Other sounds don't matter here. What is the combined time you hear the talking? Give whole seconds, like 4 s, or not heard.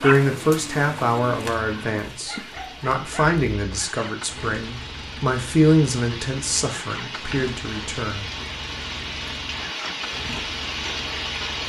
8 s.